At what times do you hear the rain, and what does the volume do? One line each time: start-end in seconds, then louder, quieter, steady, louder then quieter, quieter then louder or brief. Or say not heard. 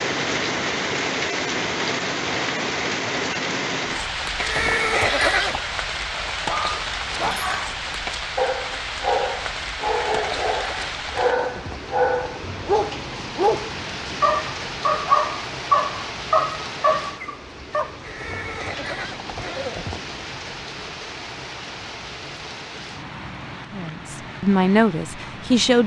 0.0-25.8 quieter.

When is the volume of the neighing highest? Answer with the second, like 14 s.
5 s.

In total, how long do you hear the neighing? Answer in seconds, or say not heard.
5 s.